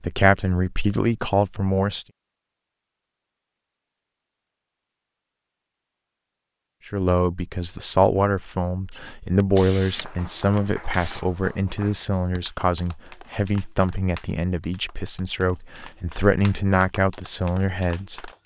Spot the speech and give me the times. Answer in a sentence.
You can hear the speech from 0.0 to 2.0 s and from 6.8 to 18.3 s.